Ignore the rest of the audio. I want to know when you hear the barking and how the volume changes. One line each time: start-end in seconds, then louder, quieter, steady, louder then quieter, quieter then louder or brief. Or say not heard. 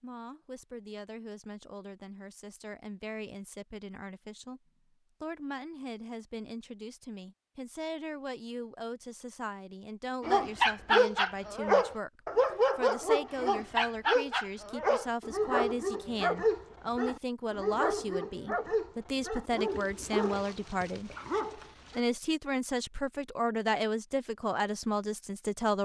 10.2-22.0 quieter.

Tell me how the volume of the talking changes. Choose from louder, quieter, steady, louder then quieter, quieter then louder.
louder.